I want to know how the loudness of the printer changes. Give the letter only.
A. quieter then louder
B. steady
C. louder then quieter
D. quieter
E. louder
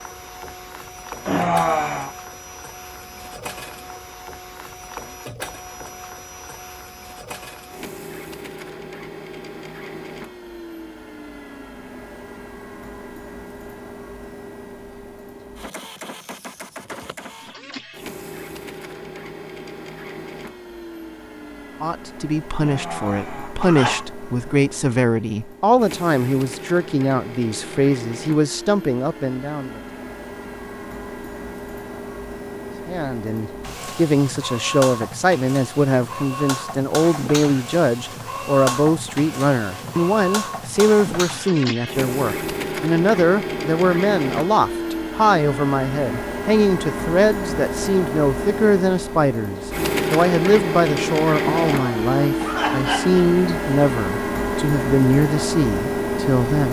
E.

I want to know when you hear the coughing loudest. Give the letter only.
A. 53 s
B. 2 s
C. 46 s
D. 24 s
B.